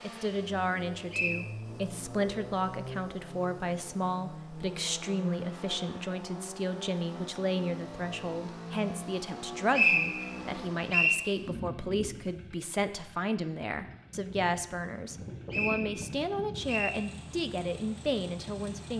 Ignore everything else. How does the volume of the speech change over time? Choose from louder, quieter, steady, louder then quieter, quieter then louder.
steady.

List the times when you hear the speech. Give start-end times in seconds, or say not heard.
0.0-18.9.